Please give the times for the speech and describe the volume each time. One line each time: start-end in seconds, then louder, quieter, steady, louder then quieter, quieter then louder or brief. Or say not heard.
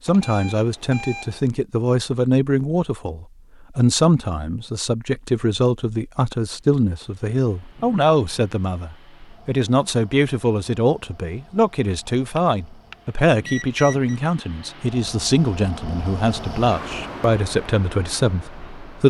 0.1-19.0 steady.